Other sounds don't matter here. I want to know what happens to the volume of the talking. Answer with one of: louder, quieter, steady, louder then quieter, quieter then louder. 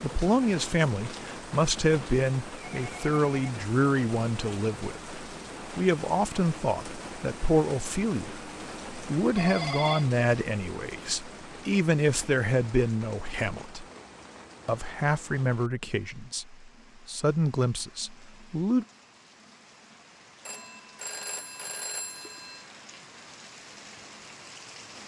steady.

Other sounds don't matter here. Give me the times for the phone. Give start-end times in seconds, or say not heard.
2.5-3.4, 9.3-10.1, 20.4-22.6.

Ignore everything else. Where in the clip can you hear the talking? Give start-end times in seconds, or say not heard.
0.0-13.8, 14.7-18.9.